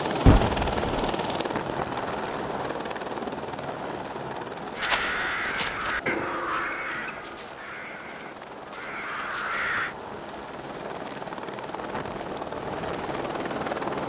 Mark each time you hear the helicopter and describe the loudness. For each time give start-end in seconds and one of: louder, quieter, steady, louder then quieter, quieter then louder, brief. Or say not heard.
0.0-14.0 quieter then louder.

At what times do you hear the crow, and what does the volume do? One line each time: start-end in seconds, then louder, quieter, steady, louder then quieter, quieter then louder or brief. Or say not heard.
4.8-9.9 quieter then louder.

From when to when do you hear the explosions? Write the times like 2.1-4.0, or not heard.
0.2-1.1.